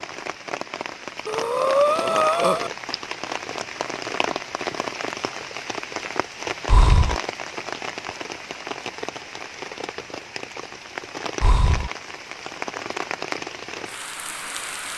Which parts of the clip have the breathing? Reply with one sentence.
You can hear the breathing from 1.2 to 2.7 s, from 6.7 to 7.2 s and from 11.4 to 11.9 s.